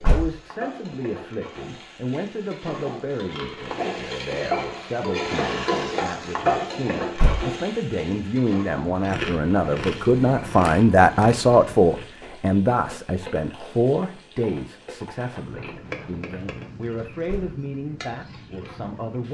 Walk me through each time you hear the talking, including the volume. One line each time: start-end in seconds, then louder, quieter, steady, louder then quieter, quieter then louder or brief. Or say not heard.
0.0-19.2 louder then quieter.